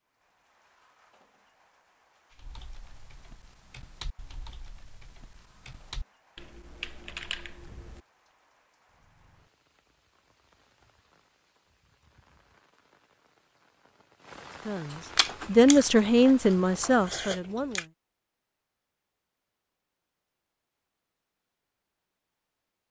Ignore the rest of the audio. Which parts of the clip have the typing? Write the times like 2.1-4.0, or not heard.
2.3-8.0.